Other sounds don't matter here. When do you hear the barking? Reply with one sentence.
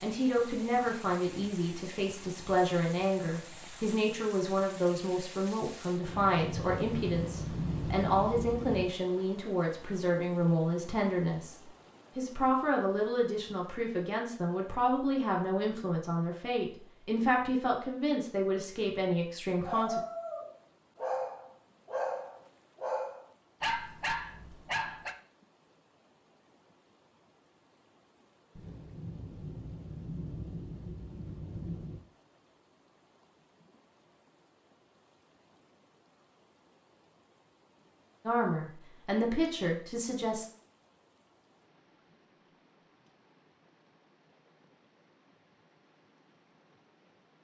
You can hear the barking from 19.6 to 25.1 s.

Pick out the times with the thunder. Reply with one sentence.
You can hear the thunder from 6.0 to 8.9 s and from 28.6 to 32.0 s.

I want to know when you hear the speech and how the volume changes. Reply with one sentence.
You can hear the speech from 0.0 to 11.6 s, at a steady volume; from 12.2 to 20.0 s, at a steady volume; and briefly from 38.2 to 40.5 s.